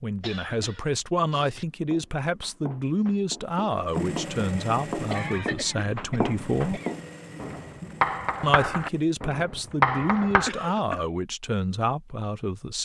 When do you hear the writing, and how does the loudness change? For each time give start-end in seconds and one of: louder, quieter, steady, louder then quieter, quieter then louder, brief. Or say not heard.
1.6-10.5 louder.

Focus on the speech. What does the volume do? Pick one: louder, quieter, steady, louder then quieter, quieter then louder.
steady.